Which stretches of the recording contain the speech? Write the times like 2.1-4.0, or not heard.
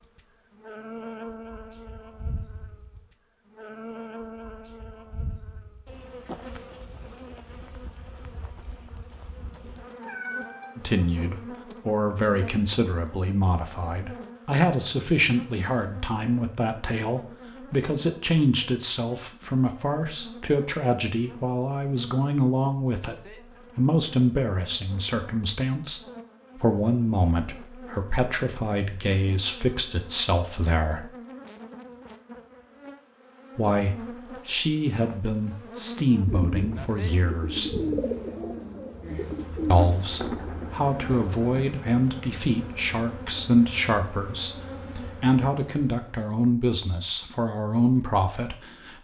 10.8-23.1, 23.8-31.1, 33.5-37.8, 39.7-48.9.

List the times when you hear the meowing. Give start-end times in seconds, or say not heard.
9.5-10.8.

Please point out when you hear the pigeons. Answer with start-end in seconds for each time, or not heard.
36.2-41.6.